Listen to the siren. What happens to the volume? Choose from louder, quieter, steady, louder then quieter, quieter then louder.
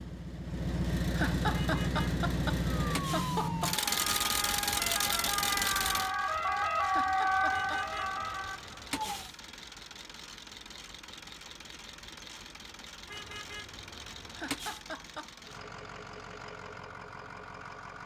louder then quieter.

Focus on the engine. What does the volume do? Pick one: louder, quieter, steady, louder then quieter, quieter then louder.
quieter.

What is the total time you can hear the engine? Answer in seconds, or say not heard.
18 s.